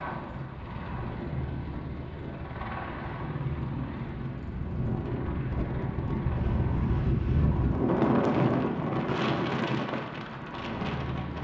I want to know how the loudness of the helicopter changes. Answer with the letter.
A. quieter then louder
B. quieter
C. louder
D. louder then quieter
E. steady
E.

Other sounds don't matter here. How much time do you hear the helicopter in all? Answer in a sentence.
You can hear the helicopter for 11 seconds altogether.